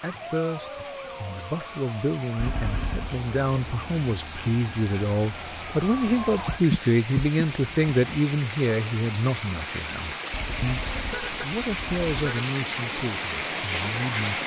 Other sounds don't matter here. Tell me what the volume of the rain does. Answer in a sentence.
The loudness of the rain goes up.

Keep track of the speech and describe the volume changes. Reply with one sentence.
The volume of the speech goes up, then down.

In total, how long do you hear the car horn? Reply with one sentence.
You can hear the car horn for 3 seconds altogether.